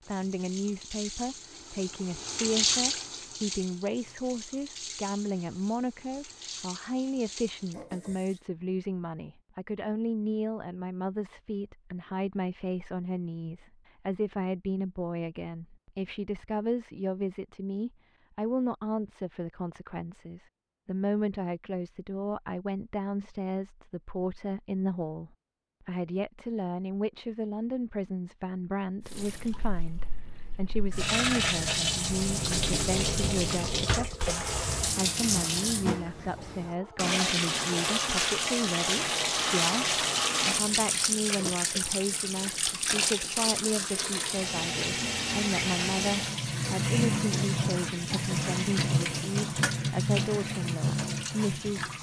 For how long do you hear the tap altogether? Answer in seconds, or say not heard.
31 s.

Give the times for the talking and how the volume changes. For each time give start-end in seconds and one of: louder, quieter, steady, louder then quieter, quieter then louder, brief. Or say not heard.
0.1-51.9 steady.